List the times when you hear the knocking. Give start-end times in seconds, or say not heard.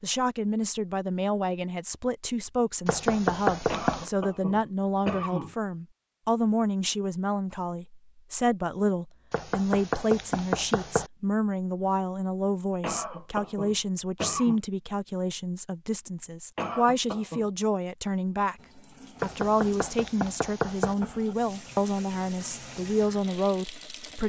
2.9-4.1, 9.3-11.1, 19.2-20.9.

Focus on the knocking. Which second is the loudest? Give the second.
3 s.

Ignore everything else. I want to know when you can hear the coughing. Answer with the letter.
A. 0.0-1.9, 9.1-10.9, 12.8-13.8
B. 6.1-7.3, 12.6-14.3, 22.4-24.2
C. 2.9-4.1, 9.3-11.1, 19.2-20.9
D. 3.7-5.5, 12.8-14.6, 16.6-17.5
D.